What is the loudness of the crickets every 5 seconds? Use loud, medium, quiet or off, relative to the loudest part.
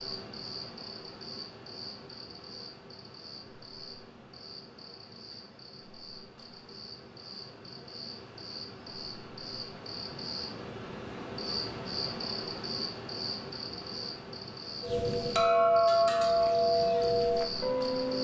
medium, medium, loud, loud.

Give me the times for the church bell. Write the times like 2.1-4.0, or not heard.
14.8-18.1.